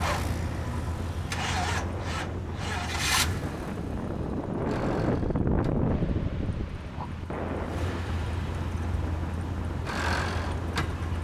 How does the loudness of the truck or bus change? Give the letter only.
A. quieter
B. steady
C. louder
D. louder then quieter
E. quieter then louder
E.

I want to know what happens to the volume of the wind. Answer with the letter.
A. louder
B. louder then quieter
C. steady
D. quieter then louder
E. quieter
B.